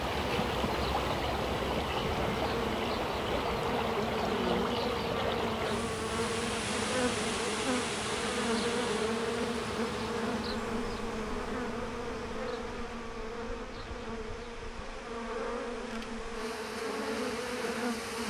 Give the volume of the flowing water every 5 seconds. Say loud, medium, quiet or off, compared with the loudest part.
loud, loud, quiet, medium.